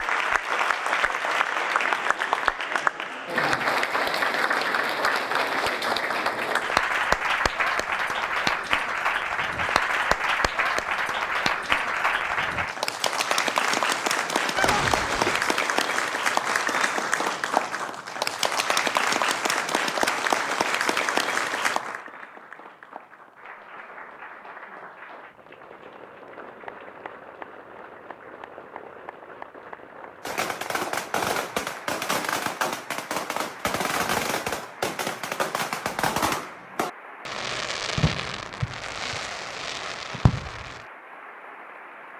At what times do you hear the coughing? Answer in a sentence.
The coughing can be heard from 14.6 to 15.6 s.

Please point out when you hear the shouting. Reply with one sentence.
You can't hear the shouting here.